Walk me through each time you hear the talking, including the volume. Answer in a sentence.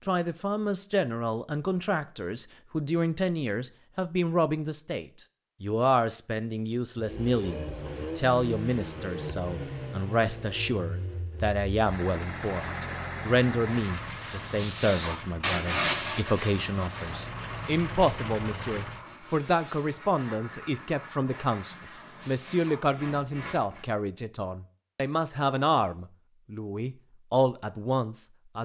The talking can be heard from 0.0 to 28.6 s, at a steady volume.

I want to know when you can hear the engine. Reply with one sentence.
You can hear the engine from 7.0 to 19.1 s.